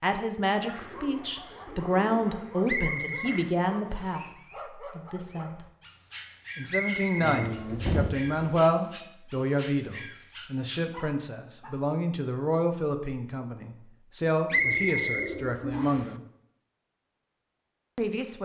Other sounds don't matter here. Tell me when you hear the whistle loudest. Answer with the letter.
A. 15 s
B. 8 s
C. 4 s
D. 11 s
A.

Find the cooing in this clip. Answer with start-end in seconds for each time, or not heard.
0.7-3.5, 7.2-8.6, 14.5-15.8.